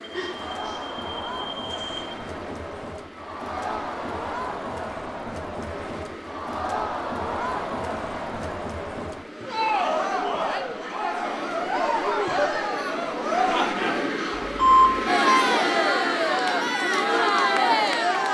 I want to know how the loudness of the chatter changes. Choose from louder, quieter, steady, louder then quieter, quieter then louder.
louder.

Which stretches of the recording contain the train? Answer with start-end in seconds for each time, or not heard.
0.0-18.3.